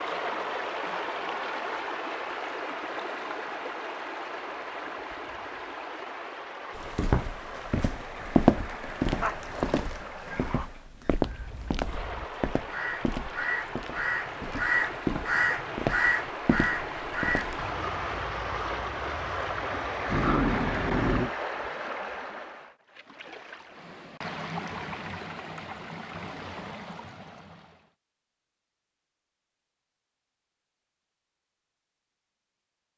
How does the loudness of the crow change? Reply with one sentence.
The volume of the crow goes up, then down.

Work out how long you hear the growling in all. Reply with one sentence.
You can hear the growling for 3 seconds altogether.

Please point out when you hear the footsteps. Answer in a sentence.
The footsteps can be heard from 6.8 to 17.6 s.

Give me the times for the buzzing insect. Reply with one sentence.
The buzzing insect can't be heard in this clip.